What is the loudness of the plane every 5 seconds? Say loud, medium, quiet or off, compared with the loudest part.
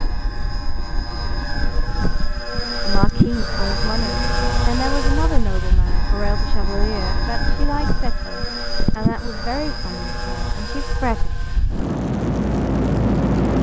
loud, medium, loud.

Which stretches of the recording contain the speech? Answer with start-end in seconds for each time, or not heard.
2.8-11.3.